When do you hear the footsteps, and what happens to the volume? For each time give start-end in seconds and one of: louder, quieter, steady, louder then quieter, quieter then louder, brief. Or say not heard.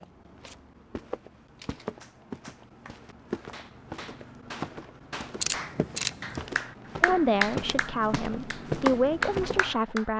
0.0-9.8 louder.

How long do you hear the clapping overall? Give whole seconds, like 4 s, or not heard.
8 s.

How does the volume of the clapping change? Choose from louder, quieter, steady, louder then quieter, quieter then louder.
louder.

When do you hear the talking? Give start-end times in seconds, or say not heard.
7.0-10.1.